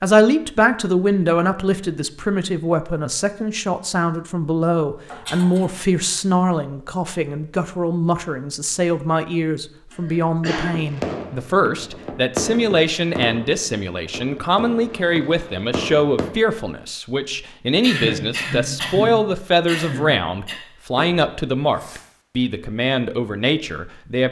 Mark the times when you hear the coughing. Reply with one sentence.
The coughing can be heard from 5.0 to 5.7 s, from 9.9 to 10.8 s and from 17.8 to 20.6 s.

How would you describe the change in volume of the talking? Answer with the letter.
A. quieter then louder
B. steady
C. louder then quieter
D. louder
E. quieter
B.